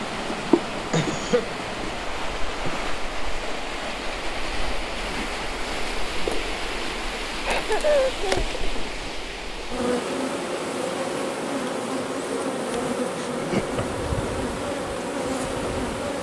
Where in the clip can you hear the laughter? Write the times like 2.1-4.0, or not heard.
0.9-1.6, 7.5-8.4, 13.2-14.1.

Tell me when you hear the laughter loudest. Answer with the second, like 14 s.
8 s.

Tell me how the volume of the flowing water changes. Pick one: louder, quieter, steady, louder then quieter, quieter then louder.
quieter.